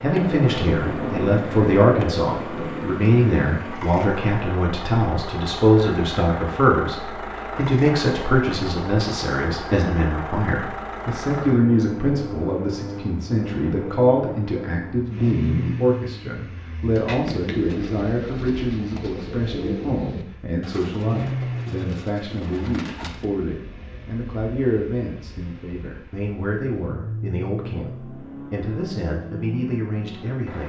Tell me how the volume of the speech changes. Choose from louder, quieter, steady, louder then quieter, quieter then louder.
quieter.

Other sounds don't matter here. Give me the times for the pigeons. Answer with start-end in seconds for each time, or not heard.
16.8-23.2.